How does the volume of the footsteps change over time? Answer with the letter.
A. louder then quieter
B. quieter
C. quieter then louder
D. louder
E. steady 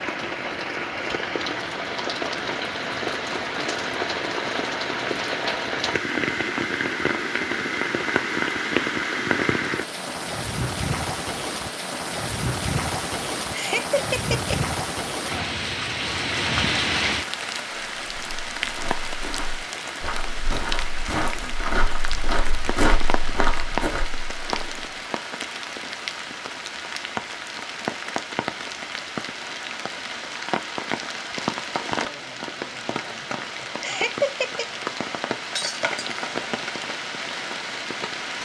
D.